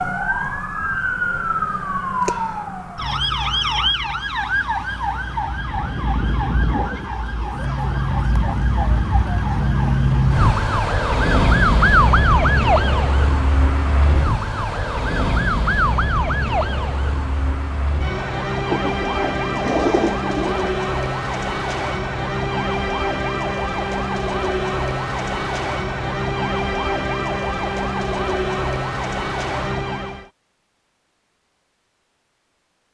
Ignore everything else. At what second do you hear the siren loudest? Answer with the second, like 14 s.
12 s.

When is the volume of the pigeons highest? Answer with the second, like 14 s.
20 s.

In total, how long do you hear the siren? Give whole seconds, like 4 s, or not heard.
30 s.